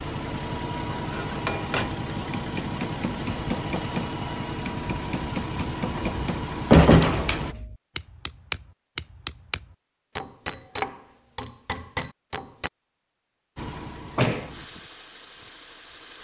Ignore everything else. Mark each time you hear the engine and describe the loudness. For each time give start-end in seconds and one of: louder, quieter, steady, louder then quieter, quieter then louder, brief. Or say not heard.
0.0-7.5 steady
13.6-16.1 brief.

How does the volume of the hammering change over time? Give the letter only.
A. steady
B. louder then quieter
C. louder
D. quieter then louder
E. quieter
A.